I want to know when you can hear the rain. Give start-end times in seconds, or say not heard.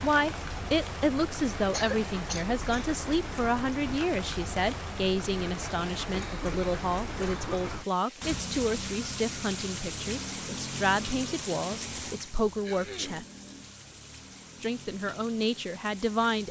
0.0-16.4.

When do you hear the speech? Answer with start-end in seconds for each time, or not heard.
0.0-13.2, 14.6-16.4.